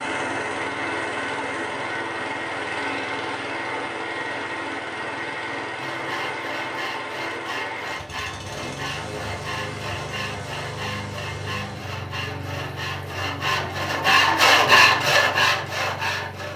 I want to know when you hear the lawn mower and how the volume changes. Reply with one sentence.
The lawn mower can be heard from 0.0 to 16.5 s, getting quieter.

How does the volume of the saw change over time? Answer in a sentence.
The volume of the saw goes up.